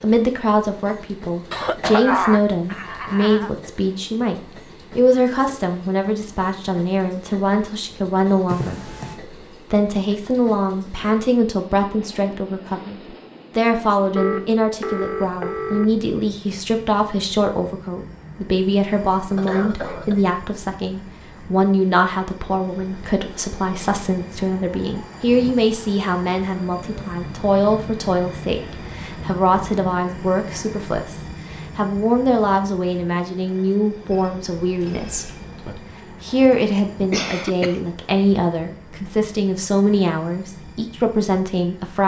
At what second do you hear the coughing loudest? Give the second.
2 s.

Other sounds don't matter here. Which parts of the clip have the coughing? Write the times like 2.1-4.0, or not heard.
1.5-3.5, 19.4-20.2, 36.2-37.8.